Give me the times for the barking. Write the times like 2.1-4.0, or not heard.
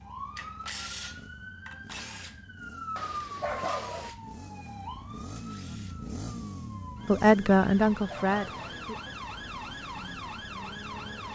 3.0-4.1, 7.6-8.8.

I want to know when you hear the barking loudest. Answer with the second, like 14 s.
4 s.